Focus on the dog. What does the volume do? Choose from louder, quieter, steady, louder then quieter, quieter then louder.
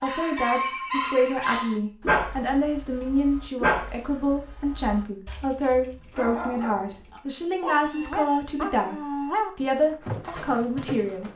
quieter then louder.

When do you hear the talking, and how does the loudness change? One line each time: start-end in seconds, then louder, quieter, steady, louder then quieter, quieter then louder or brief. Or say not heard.
0.0-11.3 steady.